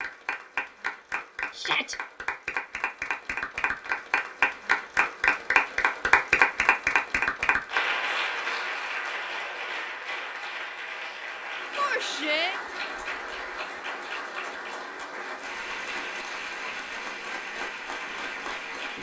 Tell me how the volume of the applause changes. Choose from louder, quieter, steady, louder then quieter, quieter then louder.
louder then quieter.